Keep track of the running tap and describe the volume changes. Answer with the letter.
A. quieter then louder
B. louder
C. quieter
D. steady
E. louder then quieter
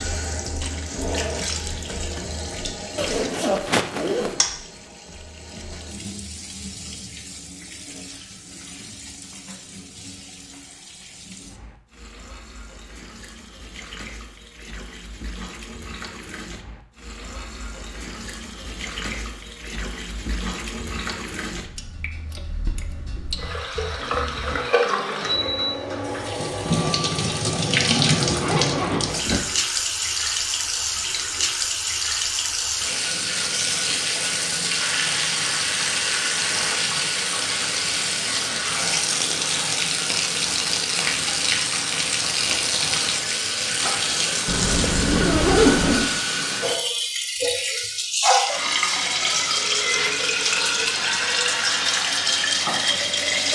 B.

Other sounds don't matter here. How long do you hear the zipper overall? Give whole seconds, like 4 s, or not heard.
4 s.